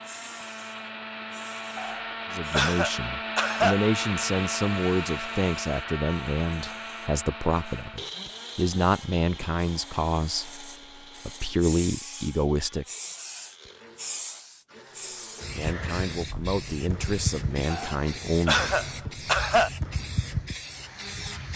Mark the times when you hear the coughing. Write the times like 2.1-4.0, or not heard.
1.8-3.8, 17.7-19.7.